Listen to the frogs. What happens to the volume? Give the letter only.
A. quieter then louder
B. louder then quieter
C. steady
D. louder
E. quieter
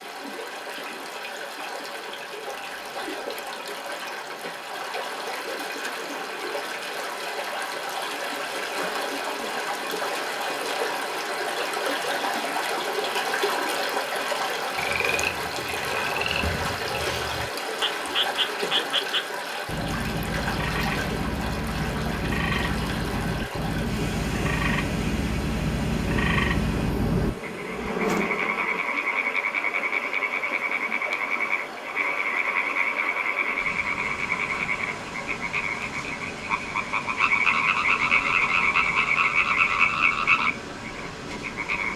D.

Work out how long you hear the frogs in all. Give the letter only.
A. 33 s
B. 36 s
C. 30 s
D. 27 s
D.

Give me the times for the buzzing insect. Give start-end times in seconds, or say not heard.
27.1-28.9.